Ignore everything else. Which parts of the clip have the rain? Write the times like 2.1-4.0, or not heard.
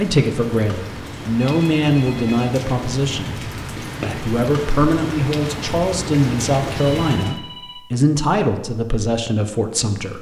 0.0-7.4.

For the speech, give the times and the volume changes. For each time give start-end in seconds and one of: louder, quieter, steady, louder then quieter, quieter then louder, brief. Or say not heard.
0.0-10.1 steady.